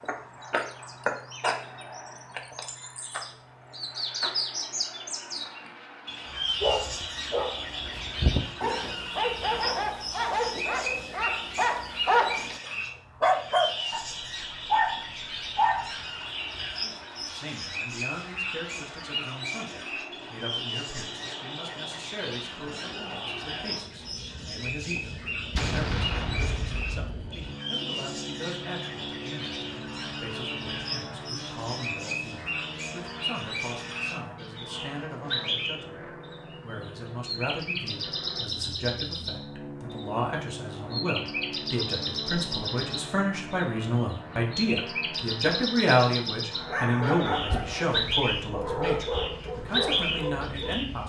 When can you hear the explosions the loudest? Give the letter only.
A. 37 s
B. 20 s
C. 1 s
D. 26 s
D.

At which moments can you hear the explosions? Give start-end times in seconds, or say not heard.
25.5-27.1.